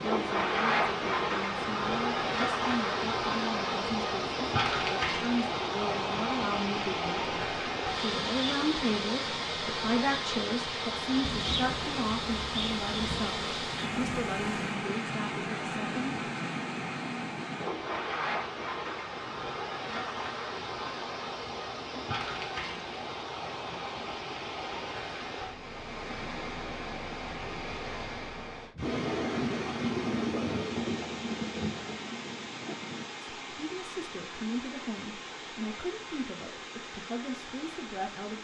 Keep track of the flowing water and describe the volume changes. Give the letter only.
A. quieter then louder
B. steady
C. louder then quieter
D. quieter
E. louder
D.